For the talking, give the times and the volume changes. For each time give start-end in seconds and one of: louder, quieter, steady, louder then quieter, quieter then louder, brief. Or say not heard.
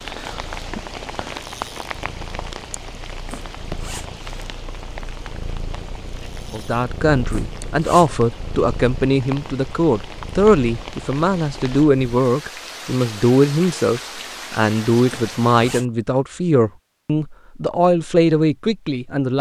6.5-19.3 steady.